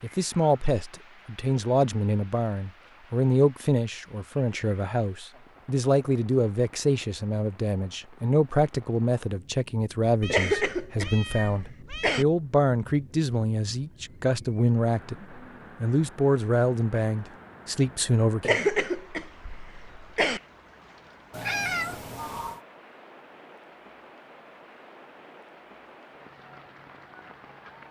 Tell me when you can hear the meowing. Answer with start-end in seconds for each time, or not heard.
10.2-12.2, 21.3-22.6.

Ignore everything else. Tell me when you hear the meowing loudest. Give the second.
22 s.